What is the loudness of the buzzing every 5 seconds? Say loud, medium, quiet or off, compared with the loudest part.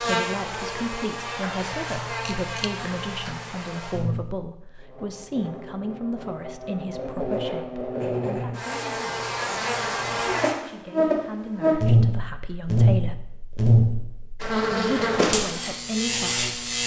medium, medium, loud, loud.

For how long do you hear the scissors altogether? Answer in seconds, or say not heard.
2 s.